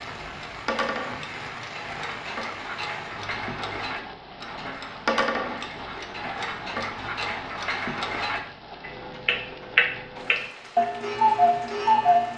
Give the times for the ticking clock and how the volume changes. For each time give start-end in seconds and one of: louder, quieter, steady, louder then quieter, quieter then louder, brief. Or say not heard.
0.1-12.3 louder.